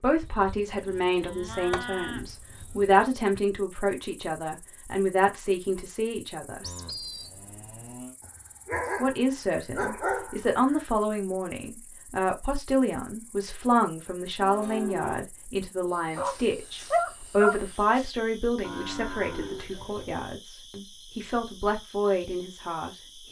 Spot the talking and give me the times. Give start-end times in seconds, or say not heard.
0.0-6.7, 9.0-23.2.